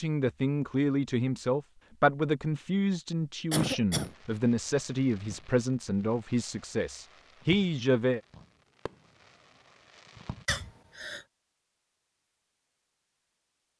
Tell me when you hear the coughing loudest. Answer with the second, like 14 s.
4 s.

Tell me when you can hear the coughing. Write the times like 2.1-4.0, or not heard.
3.5-4.2, 10.4-11.2.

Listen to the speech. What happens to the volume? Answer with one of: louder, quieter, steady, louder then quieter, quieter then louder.
steady.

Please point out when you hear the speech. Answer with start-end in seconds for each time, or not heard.
0.0-8.2.